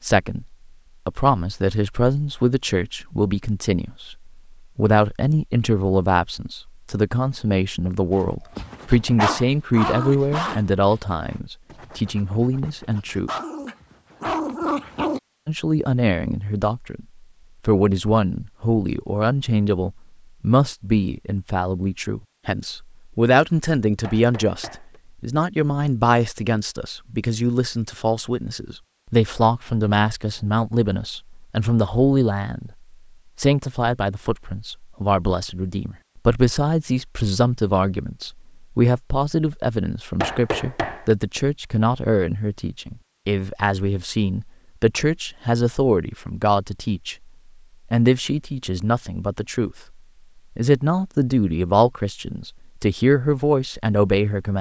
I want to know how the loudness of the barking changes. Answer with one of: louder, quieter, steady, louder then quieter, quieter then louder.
quieter then louder.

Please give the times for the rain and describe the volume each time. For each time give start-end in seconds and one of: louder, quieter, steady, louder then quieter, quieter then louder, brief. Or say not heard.
not heard.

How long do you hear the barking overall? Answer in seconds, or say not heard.
7 s.